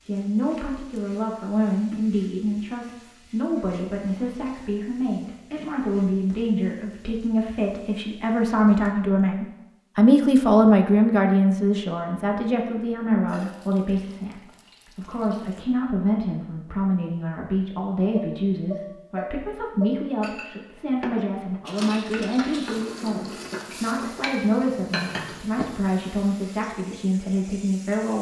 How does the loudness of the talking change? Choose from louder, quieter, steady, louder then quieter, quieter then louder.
louder then quieter.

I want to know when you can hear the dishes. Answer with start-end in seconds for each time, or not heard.
18.1-26.1.